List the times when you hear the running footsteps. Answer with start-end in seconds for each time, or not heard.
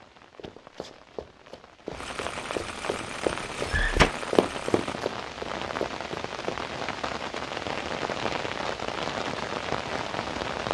0.3-6.7.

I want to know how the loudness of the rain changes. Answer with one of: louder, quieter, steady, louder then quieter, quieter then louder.
louder.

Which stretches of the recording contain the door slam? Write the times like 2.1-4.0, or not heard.
3.4-4.2.